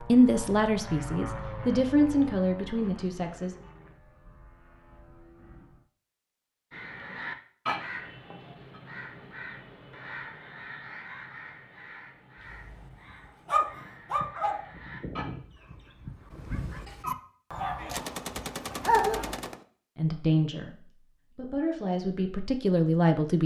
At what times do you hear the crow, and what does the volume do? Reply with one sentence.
The crow can be heard from 6.7 to 15.2 s, getting quieter.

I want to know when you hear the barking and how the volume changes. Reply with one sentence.
The barking can be heard from 12.5 to 19.4 s, getting quieter then louder.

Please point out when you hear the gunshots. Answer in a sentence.
You can hear the gunshots from 17.8 to 19.6 s.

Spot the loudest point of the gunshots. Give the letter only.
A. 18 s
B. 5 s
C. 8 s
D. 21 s
A.